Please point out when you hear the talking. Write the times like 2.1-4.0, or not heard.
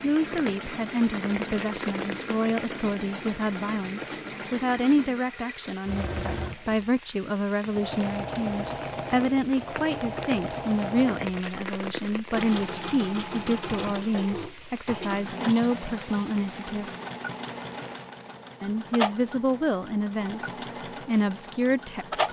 0.0-16.9, 18.6-22.2.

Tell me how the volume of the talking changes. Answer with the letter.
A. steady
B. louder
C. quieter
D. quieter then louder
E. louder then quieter
A.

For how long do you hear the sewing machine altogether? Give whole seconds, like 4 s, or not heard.
22 s.